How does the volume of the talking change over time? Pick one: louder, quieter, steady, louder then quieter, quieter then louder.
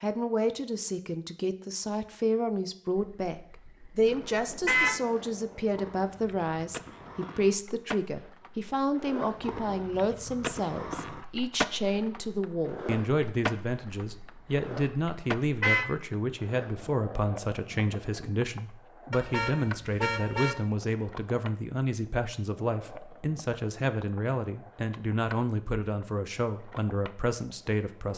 steady.